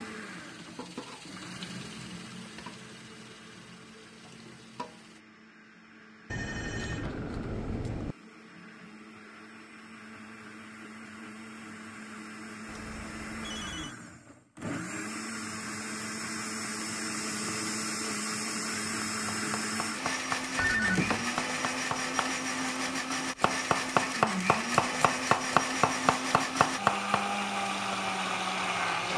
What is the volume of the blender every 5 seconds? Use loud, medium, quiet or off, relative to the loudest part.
quiet, quiet, medium, loud, loud, loud.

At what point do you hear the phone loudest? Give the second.
21 s.